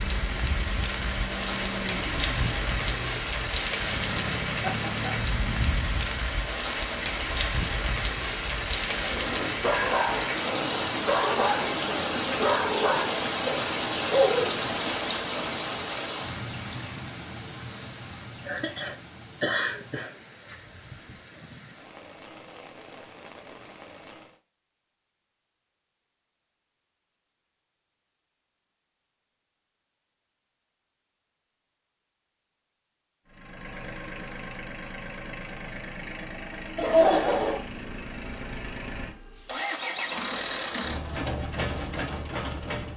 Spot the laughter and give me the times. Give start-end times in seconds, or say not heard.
4.6-5.1, 18.4-20.1, 36.8-37.6.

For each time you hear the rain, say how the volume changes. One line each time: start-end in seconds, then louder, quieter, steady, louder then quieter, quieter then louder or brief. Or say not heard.
0.0-24.4 quieter.